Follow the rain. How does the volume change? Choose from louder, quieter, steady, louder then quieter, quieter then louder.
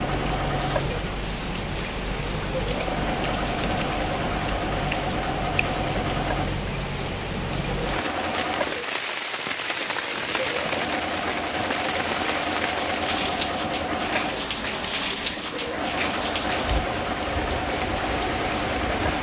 steady.